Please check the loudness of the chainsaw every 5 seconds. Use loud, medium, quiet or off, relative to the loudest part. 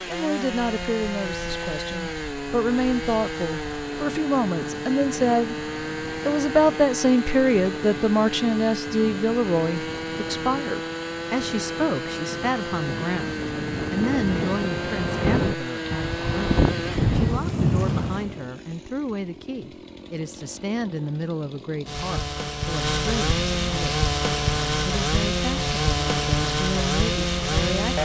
medium, medium, medium, medium, loud, loud.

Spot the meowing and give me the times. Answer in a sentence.
The meowing can't be heard in this clip.